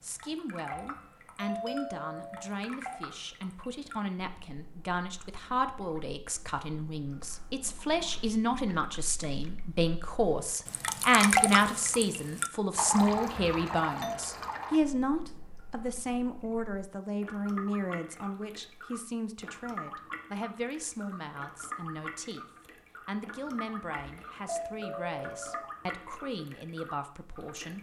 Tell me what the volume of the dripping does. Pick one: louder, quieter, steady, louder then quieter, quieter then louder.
louder then quieter.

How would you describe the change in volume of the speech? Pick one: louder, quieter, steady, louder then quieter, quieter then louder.
louder then quieter.